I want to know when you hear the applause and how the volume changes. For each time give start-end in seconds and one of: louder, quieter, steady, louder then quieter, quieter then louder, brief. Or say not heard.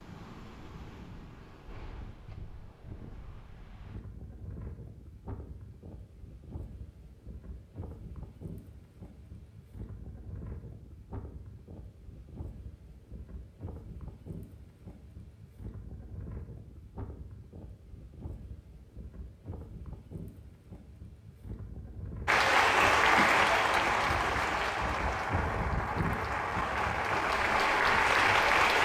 22.2-28.8 quieter then louder.